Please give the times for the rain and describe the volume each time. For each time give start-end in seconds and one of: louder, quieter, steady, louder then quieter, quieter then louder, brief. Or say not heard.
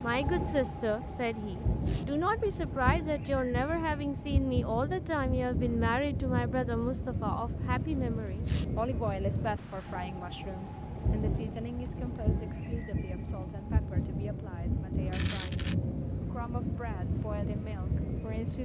0.0-18.6 steady.